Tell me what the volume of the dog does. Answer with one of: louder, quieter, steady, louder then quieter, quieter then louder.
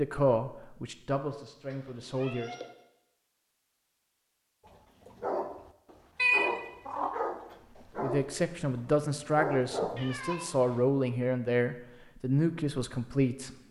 steady.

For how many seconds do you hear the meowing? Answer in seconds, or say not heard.
3 s.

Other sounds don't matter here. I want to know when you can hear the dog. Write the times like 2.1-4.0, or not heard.
4.7-10.2.